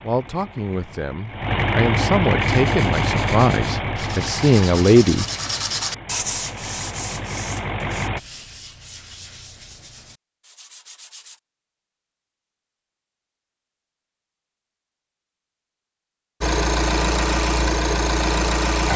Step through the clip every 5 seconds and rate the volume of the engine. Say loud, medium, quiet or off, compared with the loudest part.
loud, medium, off, loud.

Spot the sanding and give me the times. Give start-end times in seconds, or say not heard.
2.4-11.4.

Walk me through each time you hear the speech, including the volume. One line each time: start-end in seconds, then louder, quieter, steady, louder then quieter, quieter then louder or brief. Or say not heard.
0.0-5.2 louder.